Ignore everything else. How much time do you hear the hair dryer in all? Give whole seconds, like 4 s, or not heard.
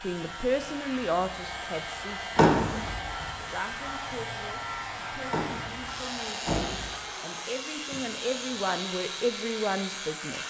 10 s.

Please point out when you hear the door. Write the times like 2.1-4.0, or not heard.
2.4-3.3, 5.3-6.9.